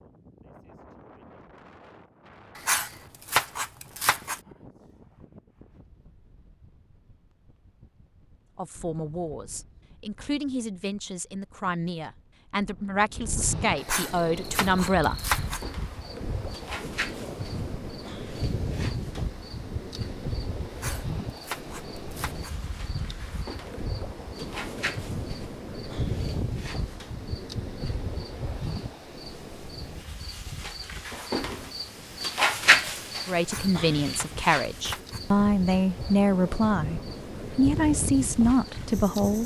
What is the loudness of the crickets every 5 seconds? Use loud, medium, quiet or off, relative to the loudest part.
off, off, off, quiet, quiet, quiet, loud, quiet.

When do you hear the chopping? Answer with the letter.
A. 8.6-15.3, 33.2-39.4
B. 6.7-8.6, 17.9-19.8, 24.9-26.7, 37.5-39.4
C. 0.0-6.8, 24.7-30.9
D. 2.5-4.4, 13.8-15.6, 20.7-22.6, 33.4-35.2
D.